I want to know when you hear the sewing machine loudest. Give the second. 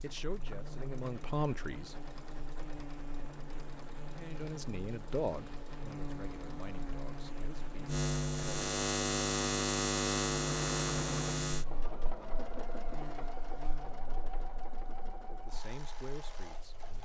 11 s.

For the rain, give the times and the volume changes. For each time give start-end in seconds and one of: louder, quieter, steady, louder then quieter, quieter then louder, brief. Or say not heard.
not heard.